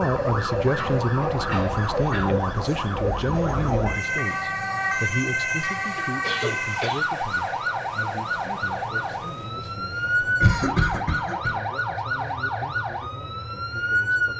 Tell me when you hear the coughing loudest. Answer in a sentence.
The volume of the coughing peaks at 11 seconds.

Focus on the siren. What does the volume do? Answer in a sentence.
The volume of the siren stays about the same.